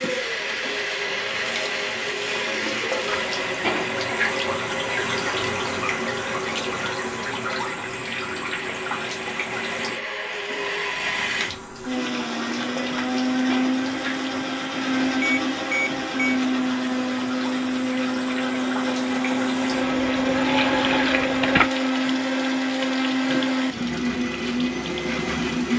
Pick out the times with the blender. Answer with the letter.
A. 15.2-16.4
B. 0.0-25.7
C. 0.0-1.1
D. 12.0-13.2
B.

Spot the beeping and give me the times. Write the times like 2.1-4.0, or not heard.
15.2-16.4.